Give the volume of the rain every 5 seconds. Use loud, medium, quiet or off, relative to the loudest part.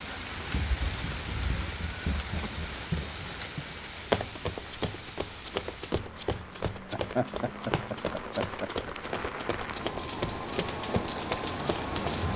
medium, medium, loud.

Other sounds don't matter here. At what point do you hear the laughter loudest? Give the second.
7 s.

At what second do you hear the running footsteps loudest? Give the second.
4 s.